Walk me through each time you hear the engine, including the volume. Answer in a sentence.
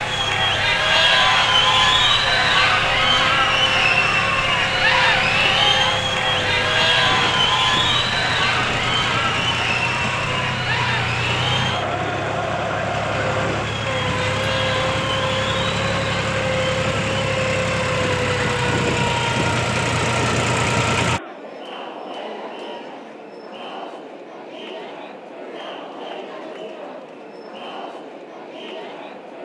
The engine can be heard from 0.0 to 21.2 s, getting louder.